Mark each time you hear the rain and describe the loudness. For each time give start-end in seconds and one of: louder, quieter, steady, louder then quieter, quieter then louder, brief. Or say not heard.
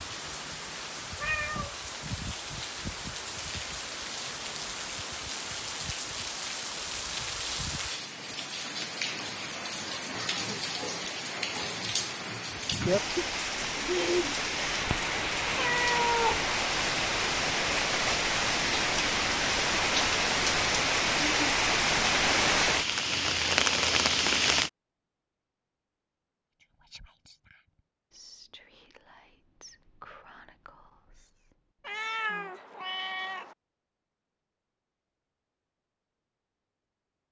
0.0-24.7 louder.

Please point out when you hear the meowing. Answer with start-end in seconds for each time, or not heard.
1.1-1.9, 15.6-16.4, 31.9-33.5.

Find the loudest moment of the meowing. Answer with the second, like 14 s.
16 s.